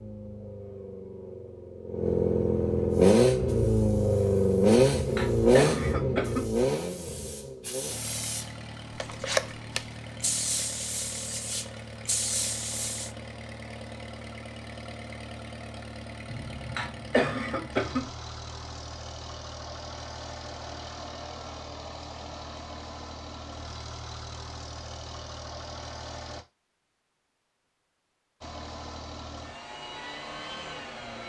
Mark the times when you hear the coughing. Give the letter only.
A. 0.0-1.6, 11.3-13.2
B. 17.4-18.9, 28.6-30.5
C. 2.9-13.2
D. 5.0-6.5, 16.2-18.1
D.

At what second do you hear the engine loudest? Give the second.
5 s.